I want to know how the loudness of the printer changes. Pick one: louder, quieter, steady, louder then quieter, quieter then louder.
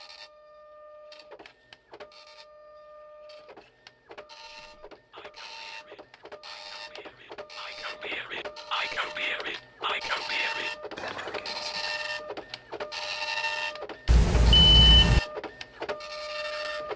louder.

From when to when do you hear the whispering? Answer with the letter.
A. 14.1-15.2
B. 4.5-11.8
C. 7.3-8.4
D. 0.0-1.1
B.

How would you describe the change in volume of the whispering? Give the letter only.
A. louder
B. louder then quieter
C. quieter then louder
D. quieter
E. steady
A.